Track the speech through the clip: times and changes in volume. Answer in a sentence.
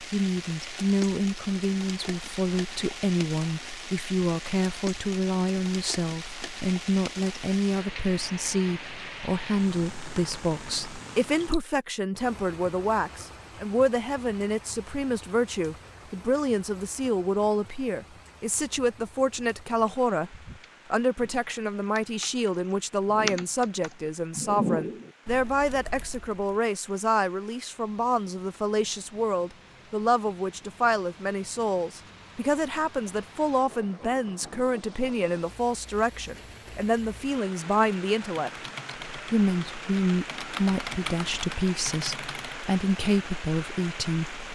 You can hear the speech from 0.0 to 44.5 s, at a steady volume.